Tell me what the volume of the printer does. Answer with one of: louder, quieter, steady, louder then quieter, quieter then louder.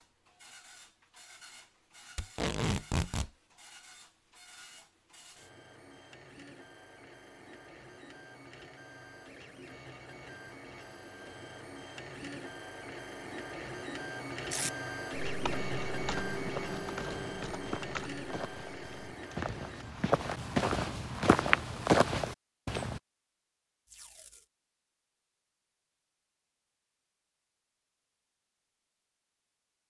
louder.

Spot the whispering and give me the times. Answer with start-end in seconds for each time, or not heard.
not heard.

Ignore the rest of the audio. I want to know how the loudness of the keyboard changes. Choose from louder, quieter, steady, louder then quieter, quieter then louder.
quieter.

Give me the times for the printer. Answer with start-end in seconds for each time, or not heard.
0.0-20.0.